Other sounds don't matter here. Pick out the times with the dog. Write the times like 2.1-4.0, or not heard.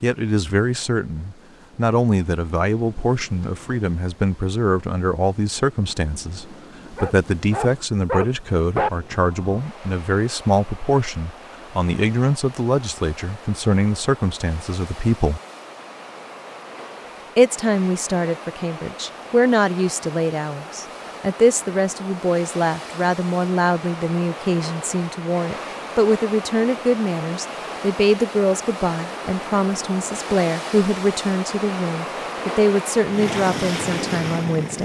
7.0-8.9.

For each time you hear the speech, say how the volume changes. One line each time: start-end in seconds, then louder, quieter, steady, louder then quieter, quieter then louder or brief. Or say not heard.
0.0-15.4 steady
17.4-34.7 steady.